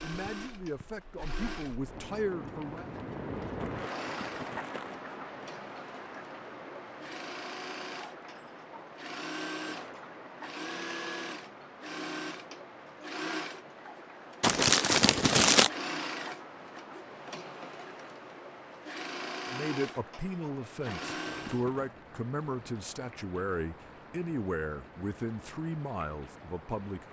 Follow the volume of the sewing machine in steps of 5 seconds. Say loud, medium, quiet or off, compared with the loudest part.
medium, loud, loud, loud, loud, off.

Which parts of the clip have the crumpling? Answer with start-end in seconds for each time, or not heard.
3.5-5.0, 14.4-15.7, 20.9-21.9.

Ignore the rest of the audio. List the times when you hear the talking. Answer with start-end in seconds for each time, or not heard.
0.0-2.9, 19.5-27.0.